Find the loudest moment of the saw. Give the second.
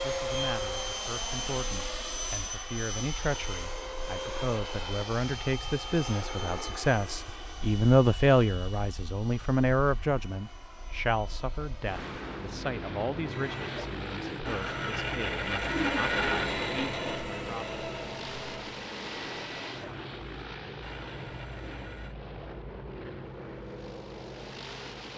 16 s.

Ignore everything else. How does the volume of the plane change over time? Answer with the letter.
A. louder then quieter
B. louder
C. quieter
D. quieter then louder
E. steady
C.